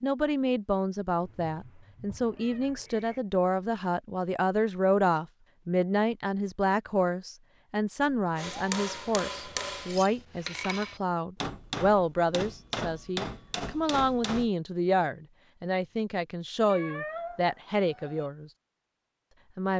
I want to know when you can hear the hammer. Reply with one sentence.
The hammer can be heard from 8.3 to 14.5 s.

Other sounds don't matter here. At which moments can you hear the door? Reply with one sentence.
The door can't be heard in this clip.